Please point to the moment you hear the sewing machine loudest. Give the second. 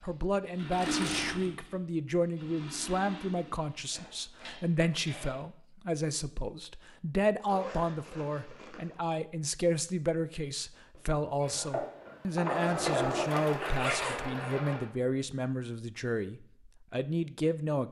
13 s.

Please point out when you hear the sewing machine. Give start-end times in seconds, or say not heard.
0.0-5.5, 10.9-14.8.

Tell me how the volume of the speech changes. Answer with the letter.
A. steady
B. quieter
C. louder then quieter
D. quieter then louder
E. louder
A.